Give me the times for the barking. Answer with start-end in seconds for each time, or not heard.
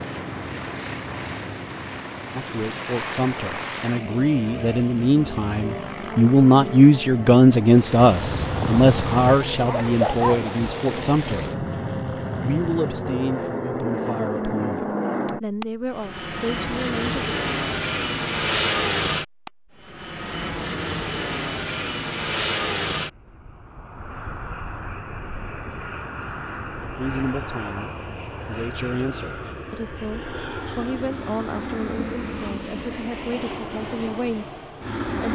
8.0-10.5.